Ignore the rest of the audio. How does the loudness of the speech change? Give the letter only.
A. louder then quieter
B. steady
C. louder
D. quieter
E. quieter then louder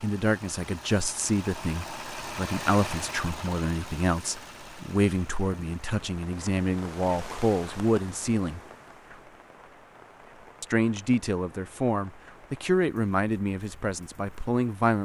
B.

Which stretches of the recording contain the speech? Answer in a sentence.
The speech can be heard from 0.0 to 8.6 s and from 10.6 to 15.0 s.